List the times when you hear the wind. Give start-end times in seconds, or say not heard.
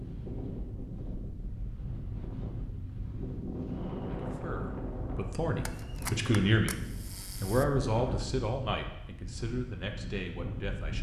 0.0-10.9.